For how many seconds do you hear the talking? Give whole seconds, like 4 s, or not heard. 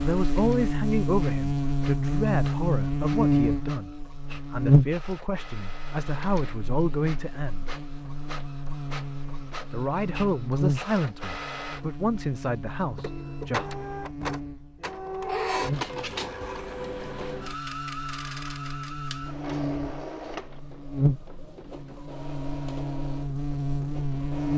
12 s.